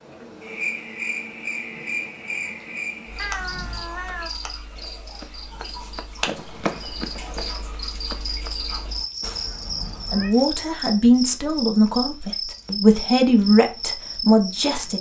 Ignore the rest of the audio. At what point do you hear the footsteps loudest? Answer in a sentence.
The loudest moment of the footsteps is at 7 seconds.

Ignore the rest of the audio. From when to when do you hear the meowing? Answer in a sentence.
The meowing can be heard from 3.1 to 4.3 s and from 9.2 to 10.3 s.